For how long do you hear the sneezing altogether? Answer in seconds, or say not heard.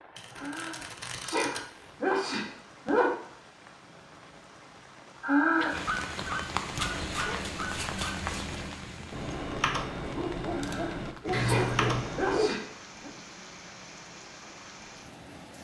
6 s.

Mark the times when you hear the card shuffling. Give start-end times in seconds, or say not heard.
0.1-1.6, 6.7-8.6, 11.3-12.1.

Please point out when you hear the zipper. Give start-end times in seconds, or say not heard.
not heard.